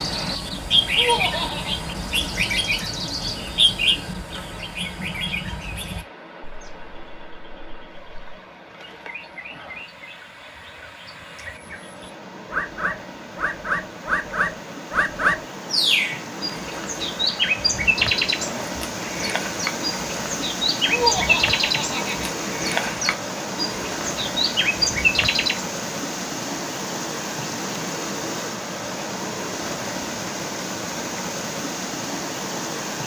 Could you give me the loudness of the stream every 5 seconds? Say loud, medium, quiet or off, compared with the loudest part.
medium, quiet, medium, loud, loud, loud, loud.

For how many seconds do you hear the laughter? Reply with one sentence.
You can hear the laughter for 2 seconds altogether.